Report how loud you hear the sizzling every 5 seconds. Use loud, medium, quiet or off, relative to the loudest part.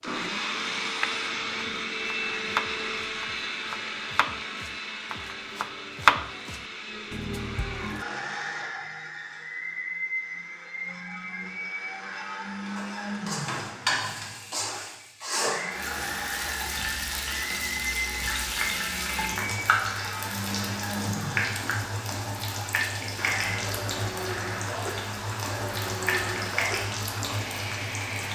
off, off, loud, loud, loud, loud.